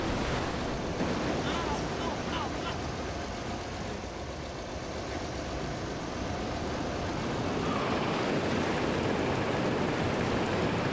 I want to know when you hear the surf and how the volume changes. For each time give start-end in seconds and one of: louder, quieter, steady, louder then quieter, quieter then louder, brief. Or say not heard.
0.0-10.8 quieter then louder.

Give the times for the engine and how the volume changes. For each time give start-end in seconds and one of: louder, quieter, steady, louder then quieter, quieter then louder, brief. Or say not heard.
0.0-10.8 steady.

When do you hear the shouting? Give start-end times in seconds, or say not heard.
1.4-2.9, 7.5-8.3.